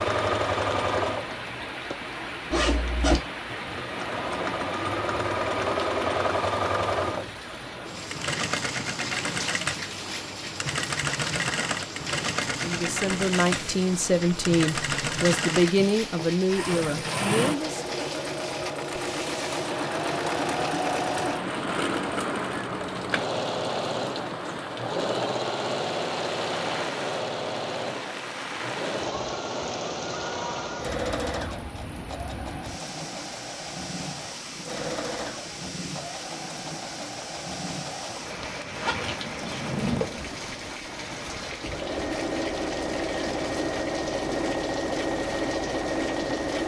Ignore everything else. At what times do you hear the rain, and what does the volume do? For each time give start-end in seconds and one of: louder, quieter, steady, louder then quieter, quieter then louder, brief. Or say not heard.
0.0-46.6 steady.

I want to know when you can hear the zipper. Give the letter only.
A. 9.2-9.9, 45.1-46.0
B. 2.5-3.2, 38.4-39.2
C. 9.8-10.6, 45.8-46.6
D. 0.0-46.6
B.